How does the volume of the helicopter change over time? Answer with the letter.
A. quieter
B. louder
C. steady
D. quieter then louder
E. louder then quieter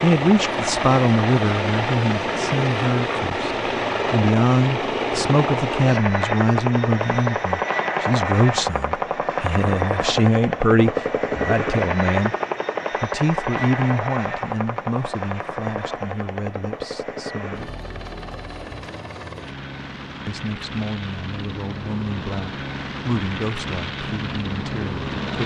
A.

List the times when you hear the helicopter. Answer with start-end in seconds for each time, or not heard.
0.0-25.4.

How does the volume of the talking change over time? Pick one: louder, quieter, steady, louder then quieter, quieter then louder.
quieter.